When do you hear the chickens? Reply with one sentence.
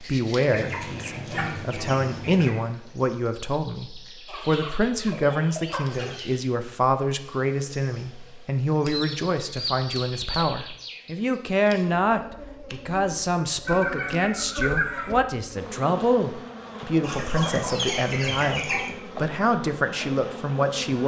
You can hear the chickens from 0.5 to 2.5 s, from 4.2 to 6.3 s, from 8.8 to 10.4 s, from 13.7 to 15.2 s and from 17.0 to 18.9 s.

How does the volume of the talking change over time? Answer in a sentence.
The volume of the talking stays about the same.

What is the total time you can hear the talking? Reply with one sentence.
The talking can be heard for 21 seconds in total.